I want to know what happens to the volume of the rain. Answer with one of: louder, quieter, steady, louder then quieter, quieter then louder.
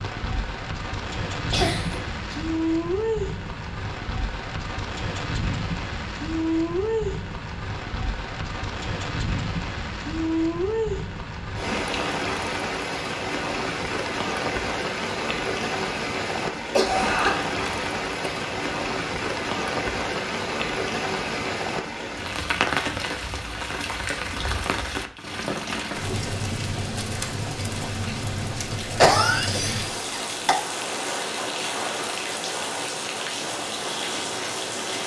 steady.